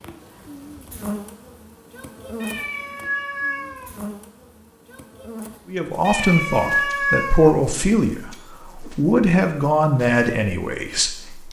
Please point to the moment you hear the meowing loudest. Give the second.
7 s.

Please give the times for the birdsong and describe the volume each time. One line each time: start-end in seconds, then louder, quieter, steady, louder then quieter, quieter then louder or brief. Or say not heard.
not heard.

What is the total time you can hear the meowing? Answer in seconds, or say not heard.
3 s.